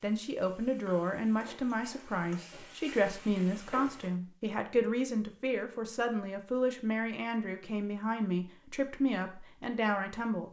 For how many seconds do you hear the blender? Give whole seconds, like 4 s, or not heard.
not heard.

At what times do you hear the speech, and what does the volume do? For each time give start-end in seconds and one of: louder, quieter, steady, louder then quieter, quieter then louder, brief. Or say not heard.
0.0-10.4 steady.